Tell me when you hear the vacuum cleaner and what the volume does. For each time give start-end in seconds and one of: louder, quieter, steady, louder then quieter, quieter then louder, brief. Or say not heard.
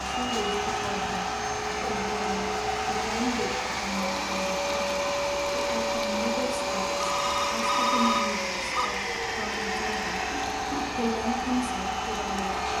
0.0-12.7 steady.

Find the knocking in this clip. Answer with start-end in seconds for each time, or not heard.
not heard.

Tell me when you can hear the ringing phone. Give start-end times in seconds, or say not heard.
7.1-8.9.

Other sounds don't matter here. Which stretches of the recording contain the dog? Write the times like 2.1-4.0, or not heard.
not heard.